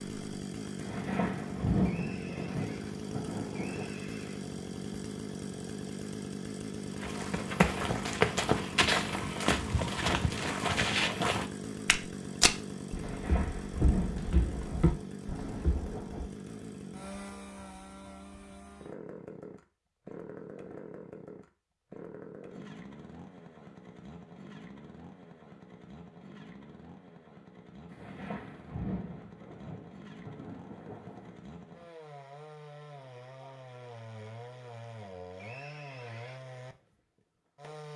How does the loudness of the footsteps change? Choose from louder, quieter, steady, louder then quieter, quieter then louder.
quieter.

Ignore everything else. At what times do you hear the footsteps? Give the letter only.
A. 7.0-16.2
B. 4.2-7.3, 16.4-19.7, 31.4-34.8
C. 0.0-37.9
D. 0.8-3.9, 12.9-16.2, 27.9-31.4
A.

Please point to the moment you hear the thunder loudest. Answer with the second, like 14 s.
2 s.